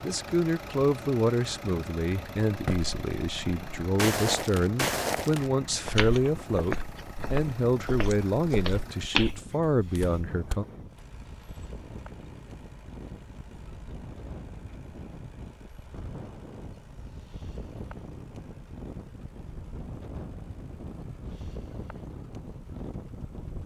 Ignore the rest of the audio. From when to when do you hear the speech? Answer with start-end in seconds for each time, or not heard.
0.0-10.7.